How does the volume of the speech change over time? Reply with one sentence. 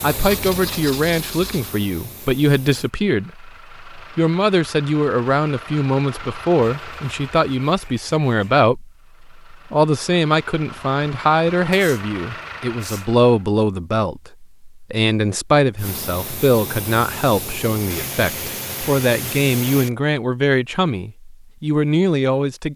The volume of the speech stays about the same.